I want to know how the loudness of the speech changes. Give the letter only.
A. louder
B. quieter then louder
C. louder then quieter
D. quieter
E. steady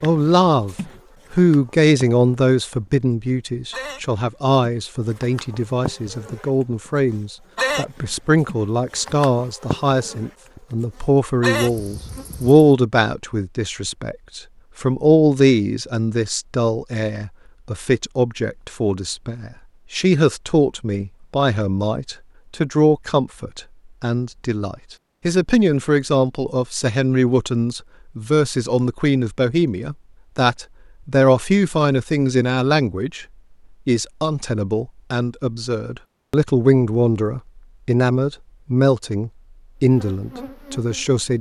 E.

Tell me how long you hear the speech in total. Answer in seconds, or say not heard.
41 s.